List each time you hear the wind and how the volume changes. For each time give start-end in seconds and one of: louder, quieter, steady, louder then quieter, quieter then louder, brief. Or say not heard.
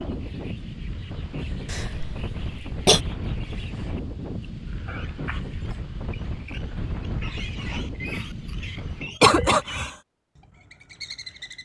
0.0-9.1 steady.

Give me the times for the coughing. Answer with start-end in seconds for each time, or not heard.
1.7-3.0, 9.2-9.9.